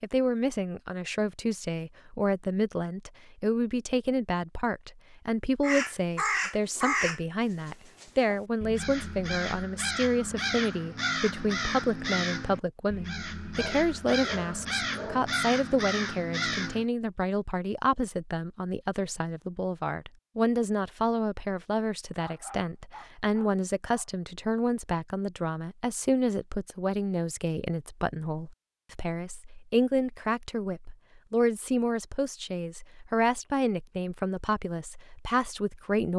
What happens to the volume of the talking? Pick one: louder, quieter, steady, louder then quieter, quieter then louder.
steady.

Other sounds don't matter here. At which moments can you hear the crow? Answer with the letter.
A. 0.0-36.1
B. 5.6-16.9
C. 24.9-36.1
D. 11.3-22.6
B.